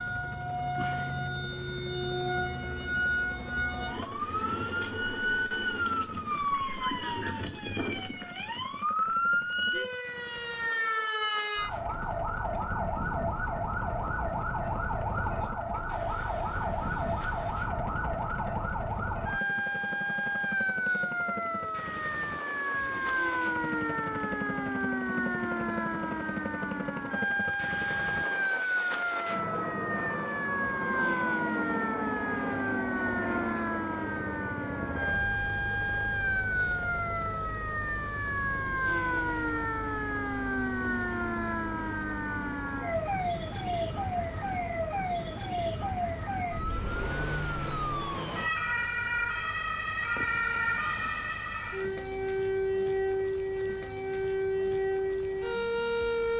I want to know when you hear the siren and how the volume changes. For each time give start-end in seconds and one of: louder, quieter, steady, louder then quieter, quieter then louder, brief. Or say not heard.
0.0-56.3 steady.